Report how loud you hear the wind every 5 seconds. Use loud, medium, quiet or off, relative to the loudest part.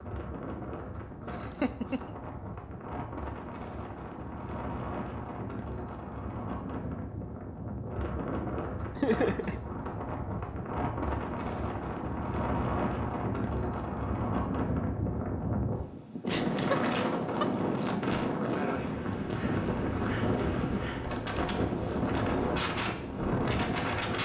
medium, medium, loud, loud, loud.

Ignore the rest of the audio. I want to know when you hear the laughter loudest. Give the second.
9 s.